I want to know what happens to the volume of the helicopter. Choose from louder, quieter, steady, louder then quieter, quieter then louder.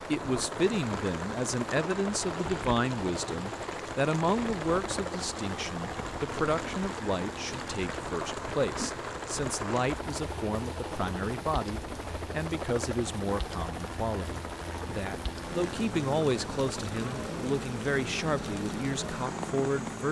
steady.